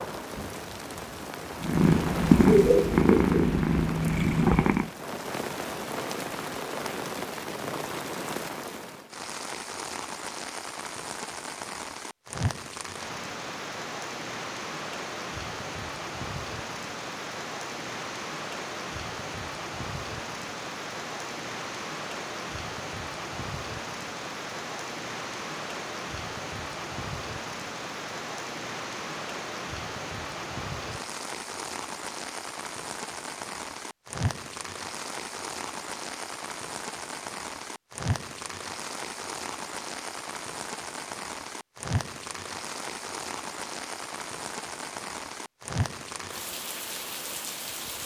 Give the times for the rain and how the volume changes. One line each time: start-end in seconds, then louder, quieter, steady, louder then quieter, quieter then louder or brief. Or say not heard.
0.0-48.0 steady.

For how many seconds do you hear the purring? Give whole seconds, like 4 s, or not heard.
3 s.